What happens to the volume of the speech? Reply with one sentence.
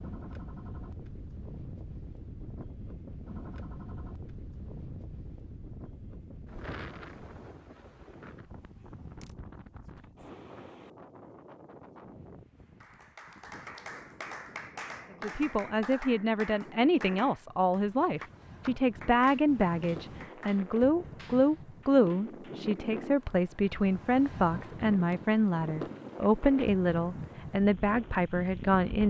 The loudness of the speech stays about the same.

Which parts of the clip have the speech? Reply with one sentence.
The speech can be heard from 15.2 to 29.0 s.